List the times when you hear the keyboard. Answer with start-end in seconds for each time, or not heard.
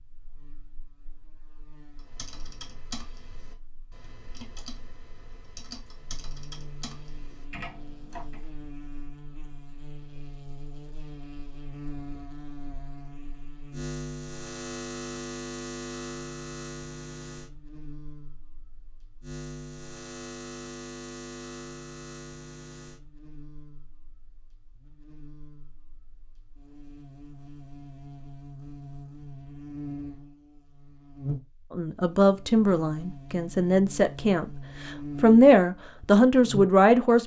1.9-8.4.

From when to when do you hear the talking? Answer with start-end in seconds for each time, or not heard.
31.7-37.2.